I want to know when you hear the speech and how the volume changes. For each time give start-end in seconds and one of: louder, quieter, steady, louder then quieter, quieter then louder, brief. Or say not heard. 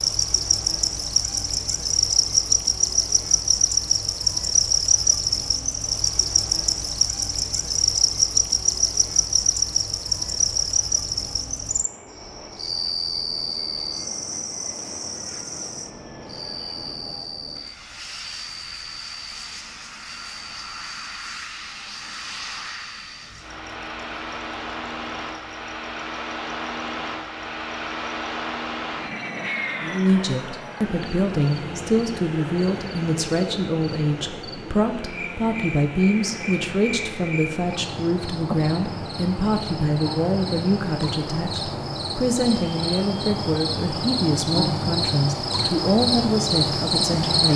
29.8-47.5 steady.